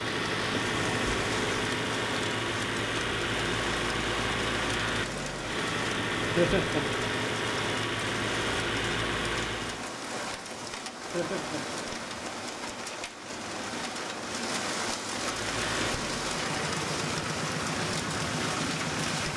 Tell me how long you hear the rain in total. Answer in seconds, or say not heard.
19 s.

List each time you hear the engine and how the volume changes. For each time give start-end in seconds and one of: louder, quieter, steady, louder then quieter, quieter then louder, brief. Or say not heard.
0.0-9.9 steady
15.1-19.3 steady.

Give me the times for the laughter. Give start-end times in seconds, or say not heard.
6.3-6.8, 11.1-11.6.